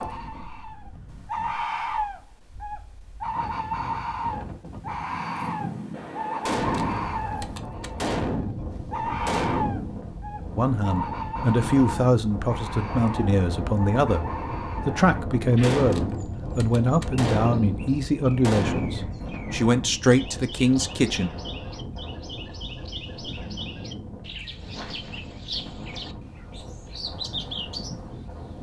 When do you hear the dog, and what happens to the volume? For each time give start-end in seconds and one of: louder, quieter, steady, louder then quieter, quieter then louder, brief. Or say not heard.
not heard.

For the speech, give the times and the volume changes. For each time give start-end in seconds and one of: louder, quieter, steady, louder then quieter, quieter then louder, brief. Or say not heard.
10.6-21.3 steady.